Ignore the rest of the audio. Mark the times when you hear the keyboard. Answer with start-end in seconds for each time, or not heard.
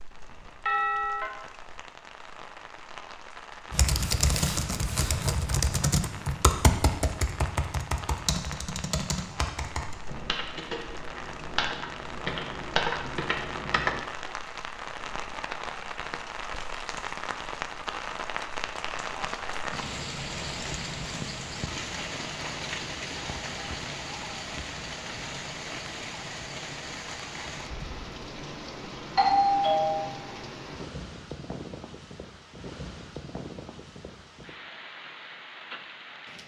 3.7-14.0.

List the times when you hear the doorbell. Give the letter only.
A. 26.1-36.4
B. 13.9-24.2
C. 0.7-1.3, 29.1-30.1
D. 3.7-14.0
C.